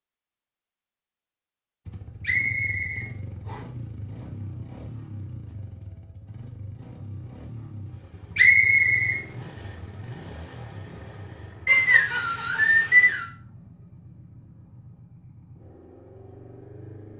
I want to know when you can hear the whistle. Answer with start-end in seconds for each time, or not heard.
2.2-3.6, 8.3-9.2, 11.7-13.2.